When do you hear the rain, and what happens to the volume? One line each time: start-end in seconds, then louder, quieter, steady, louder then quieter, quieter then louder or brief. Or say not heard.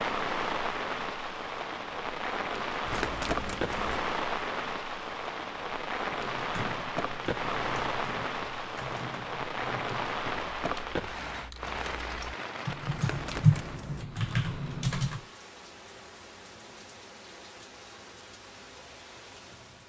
0.0-19.8 quieter.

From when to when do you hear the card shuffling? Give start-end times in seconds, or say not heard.
2.9-4.1, 12.9-14.1.